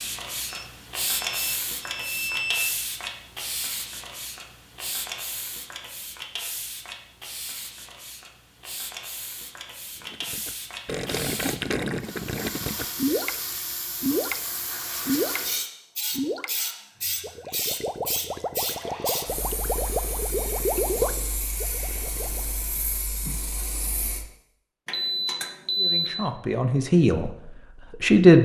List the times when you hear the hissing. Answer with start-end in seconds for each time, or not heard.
0.0-24.2.